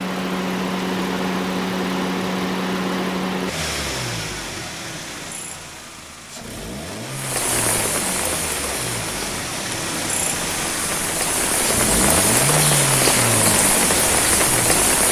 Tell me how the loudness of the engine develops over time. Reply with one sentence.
The volume of the engine goes down, then up.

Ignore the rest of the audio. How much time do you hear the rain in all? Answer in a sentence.
The rain can be heard for 8 seconds in total.